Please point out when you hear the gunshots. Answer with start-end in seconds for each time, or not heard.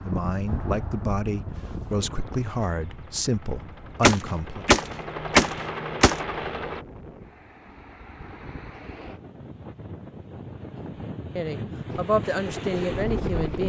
4.0-6.2.